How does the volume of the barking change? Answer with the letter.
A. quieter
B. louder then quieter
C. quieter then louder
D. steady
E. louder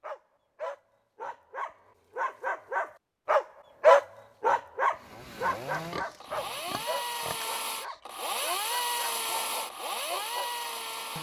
B.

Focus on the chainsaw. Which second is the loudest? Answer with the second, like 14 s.
9 s.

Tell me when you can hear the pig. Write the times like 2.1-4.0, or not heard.
5.7-7.5.